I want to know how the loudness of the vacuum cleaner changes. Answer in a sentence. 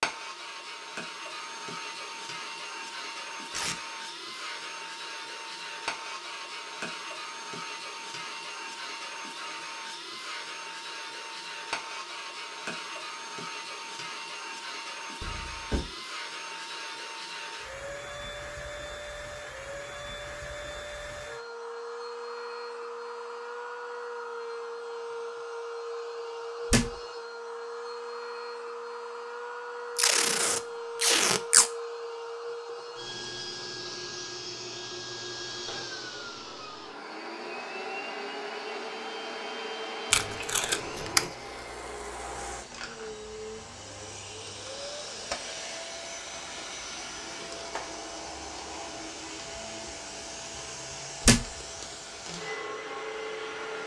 The volume of the vacuum cleaner stays about the same.